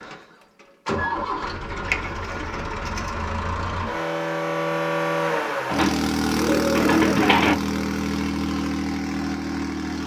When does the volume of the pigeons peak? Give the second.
7 s.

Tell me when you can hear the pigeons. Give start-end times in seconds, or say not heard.
1.9-3.2, 5.7-7.5.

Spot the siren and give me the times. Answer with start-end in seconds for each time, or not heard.
not heard.